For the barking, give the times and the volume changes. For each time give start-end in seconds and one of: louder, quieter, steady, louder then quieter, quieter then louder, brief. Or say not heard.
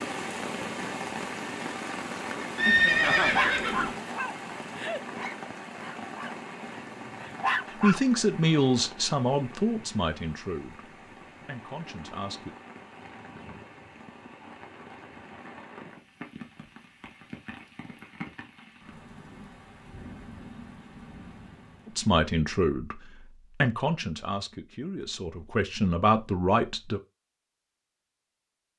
3.2-8.2 quieter then louder.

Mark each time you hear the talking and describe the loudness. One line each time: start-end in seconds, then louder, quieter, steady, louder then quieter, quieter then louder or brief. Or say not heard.
7.7-12.6 quieter
21.9-27.0 quieter then louder.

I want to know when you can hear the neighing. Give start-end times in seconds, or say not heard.
2.5-4.0.